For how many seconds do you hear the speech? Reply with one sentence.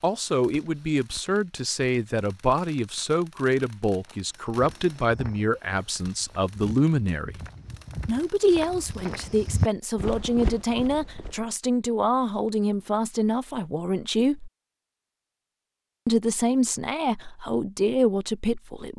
You can hear the speech for 17 seconds altogether.